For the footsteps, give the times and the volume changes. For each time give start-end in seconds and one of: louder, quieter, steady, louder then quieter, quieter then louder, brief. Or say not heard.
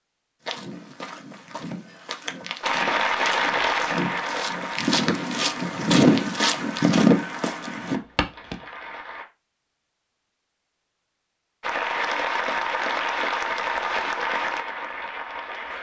0.5-8.6 louder.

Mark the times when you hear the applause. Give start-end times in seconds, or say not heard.
2.6-9.2, 11.6-15.7.